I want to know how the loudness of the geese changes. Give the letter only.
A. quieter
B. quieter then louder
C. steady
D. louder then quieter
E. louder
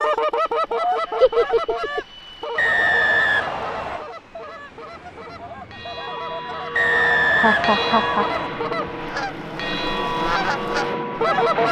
B.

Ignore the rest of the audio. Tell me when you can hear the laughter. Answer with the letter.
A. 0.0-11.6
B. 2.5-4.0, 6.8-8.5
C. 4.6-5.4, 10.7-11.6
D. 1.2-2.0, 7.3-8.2
D.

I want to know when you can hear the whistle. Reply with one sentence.
You can hear the whistle from 2.5 to 4.0 s and from 6.8 to 8.5 s.